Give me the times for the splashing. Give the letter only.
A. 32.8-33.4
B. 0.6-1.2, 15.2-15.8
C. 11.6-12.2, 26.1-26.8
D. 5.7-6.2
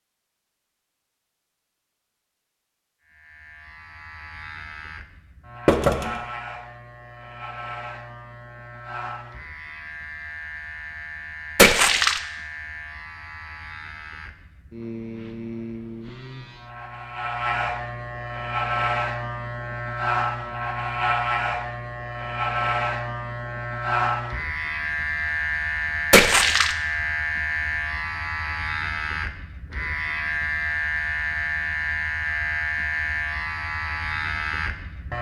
C.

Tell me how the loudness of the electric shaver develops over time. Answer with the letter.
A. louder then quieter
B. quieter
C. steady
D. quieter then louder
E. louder
E.